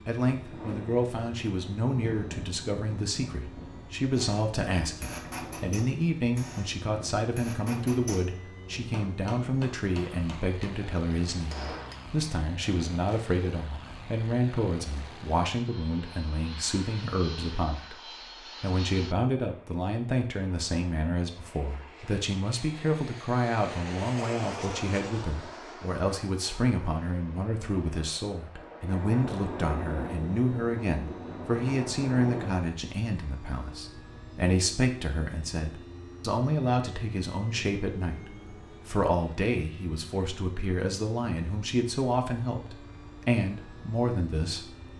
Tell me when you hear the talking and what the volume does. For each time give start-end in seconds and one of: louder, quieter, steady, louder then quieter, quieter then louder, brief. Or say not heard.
0.1-44.9 steady.